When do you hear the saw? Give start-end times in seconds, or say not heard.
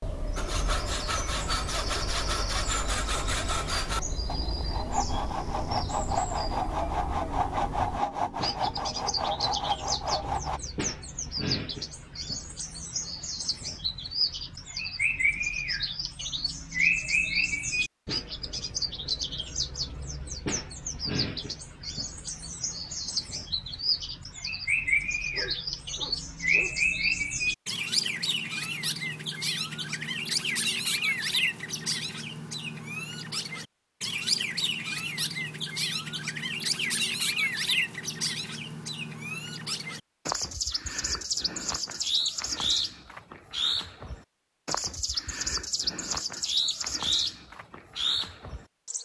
0.3-10.6.